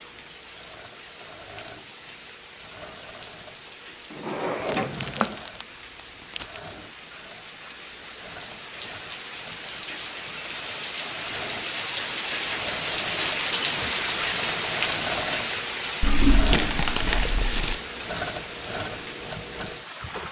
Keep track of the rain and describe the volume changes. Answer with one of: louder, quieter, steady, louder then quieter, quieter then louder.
louder then quieter.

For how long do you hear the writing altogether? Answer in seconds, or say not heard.
not heard.